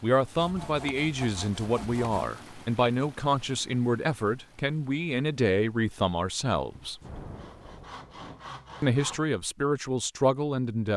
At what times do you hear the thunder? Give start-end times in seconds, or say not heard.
7.0-8.3.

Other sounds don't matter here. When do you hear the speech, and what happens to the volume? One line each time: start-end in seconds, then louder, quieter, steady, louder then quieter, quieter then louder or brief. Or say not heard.
0.0-7.0 steady
8.8-10.9 brief.